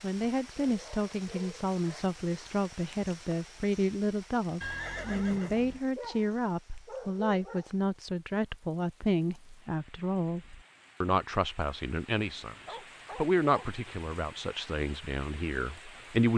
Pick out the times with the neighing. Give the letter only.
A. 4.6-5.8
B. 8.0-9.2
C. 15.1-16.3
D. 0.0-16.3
A.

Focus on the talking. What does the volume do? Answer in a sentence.
The loudness of the talking stays about the same.